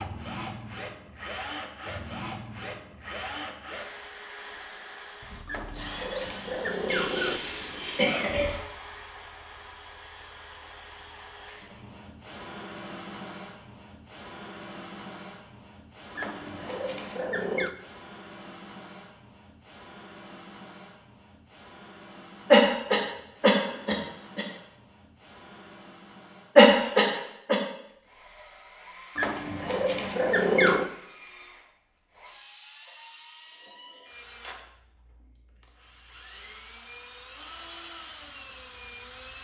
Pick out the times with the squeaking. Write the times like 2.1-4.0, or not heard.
5.5-7.4, 16.1-17.8, 29.1-30.9.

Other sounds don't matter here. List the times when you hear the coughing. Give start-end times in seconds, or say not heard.
6.8-8.6, 22.5-24.4, 26.6-27.6.